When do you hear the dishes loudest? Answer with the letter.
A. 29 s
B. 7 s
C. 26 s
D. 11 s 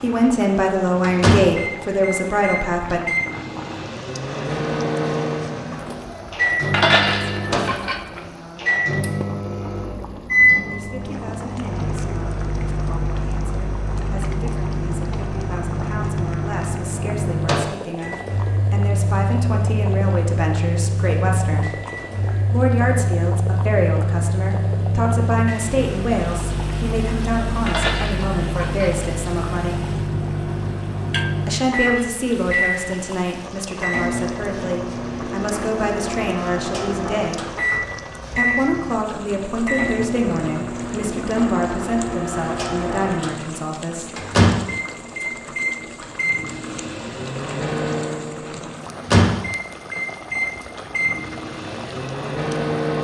B.